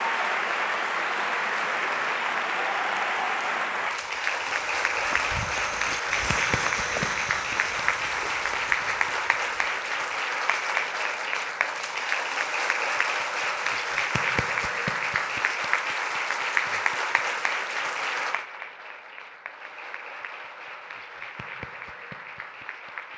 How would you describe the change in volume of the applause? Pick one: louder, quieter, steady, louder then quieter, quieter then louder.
quieter.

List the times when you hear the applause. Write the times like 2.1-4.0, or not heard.
0.0-23.1.